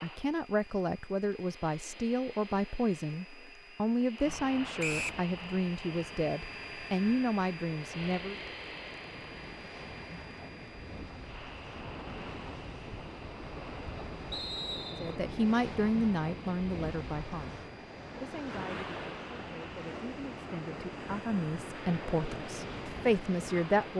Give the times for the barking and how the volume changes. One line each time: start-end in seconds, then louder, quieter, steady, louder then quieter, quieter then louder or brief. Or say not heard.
not heard.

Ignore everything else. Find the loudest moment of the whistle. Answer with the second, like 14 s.
5 s.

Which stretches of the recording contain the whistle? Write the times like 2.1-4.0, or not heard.
4.8-5.2, 14.3-15.2.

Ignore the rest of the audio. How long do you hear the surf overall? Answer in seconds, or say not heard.
20 s.